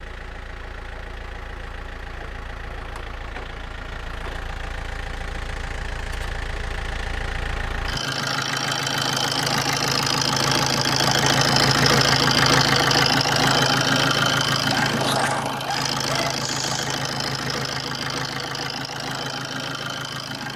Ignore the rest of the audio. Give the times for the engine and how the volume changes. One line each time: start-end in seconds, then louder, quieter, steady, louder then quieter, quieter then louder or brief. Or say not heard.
0.0-20.5 louder then quieter.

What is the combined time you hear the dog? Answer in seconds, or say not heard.
2 s.